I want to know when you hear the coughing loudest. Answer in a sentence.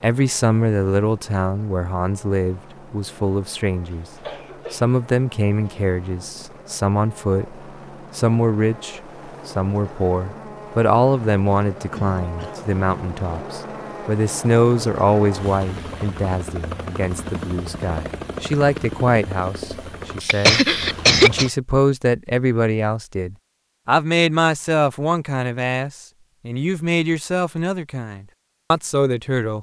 The volume of the coughing peaks at 21 seconds.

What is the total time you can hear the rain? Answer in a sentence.
The rain can't be heard in this clip.